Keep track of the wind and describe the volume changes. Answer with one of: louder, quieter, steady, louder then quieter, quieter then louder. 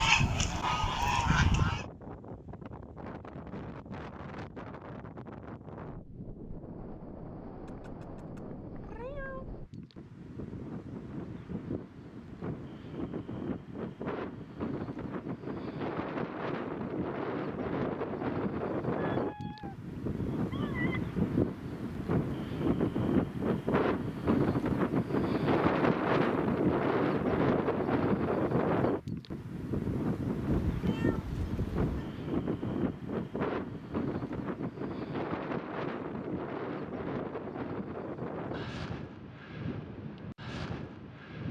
louder then quieter.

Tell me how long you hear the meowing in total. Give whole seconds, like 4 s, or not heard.
5 s.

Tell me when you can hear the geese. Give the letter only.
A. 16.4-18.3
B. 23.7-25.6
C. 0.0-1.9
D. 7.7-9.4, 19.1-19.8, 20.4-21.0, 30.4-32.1
C.